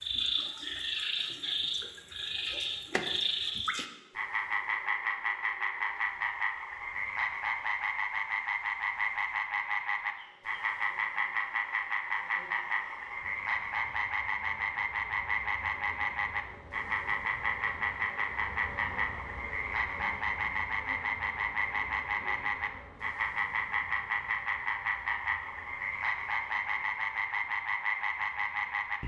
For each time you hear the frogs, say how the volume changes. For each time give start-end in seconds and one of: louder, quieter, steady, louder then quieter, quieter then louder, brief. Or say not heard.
0.0-29.0 steady.